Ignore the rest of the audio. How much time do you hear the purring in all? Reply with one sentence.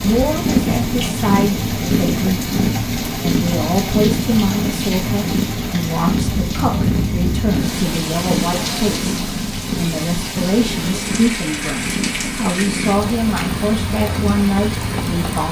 You can hear the purring for 15 seconds altogether.